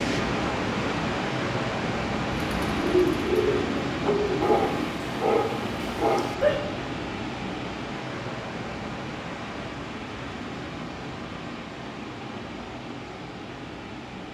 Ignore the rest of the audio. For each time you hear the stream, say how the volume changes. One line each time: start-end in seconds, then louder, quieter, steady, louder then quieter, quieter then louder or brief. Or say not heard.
0.0-14.2 quieter.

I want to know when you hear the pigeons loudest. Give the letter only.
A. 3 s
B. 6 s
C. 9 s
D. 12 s
A.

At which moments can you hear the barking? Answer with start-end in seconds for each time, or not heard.
4.0-6.8.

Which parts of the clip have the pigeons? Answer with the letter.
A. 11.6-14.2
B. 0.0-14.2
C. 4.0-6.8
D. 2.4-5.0
D.